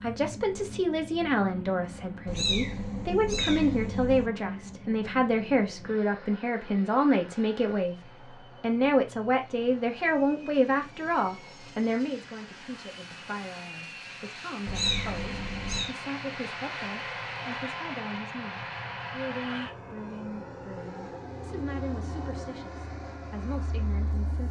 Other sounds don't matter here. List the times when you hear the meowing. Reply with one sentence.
The meowing can be heard from 2.2 to 4.3 s and from 14.7 to 15.9 s.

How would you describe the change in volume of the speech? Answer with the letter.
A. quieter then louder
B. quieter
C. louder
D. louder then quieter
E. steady
B.